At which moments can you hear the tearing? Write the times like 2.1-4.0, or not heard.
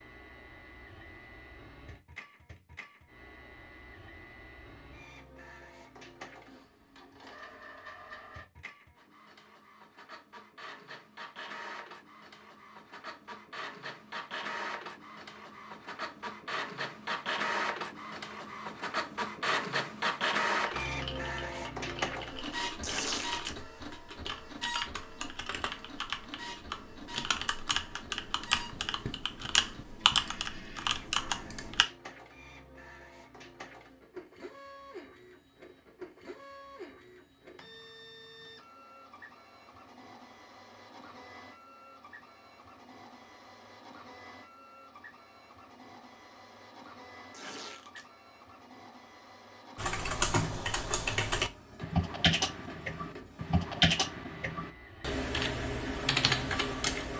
22.8-23.6, 47.3-48.0.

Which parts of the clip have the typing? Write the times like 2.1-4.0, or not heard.
20.8-31.9, 49.8-57.1.